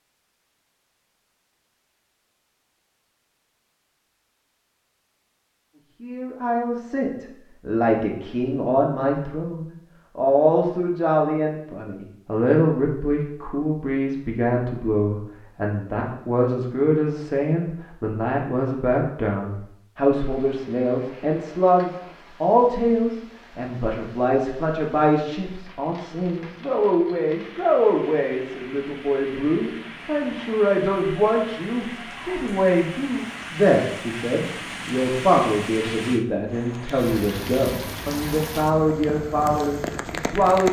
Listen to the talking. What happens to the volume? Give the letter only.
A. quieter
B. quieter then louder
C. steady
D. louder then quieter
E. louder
C.